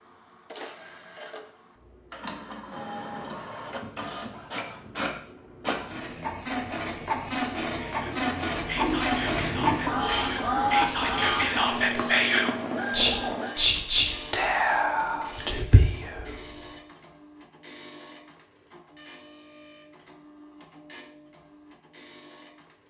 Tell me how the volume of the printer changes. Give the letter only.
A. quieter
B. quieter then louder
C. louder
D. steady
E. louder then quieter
E.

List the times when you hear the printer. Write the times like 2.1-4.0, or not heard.
0.0-22.8.